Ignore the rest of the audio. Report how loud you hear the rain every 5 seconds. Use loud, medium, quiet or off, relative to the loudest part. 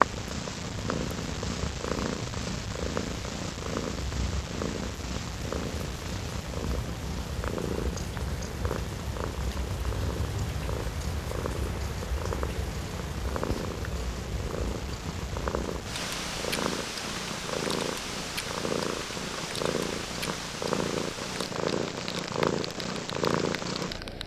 medium, loud, loud, loud, loud.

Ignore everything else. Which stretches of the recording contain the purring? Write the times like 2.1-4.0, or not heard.
0.0-24.2.